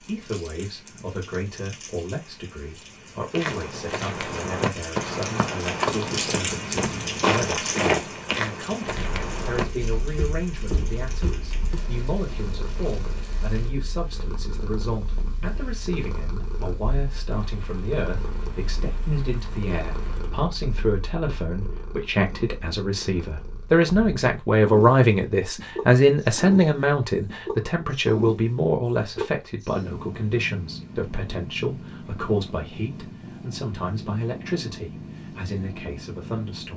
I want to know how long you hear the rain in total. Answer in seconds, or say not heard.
20 s.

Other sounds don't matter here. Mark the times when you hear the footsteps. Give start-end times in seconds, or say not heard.
3.3-11.8.